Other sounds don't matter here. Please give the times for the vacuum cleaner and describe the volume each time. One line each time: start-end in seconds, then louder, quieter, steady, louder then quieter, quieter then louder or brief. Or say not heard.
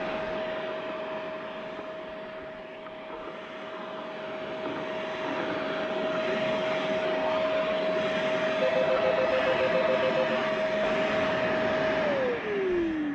0.0-13.0 louder.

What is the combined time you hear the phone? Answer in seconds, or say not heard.
2 s.